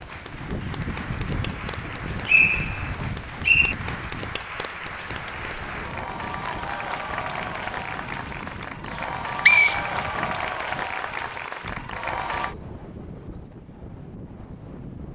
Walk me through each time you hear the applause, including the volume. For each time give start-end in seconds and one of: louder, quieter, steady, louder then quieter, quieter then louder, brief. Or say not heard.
0.0-12.6 louder.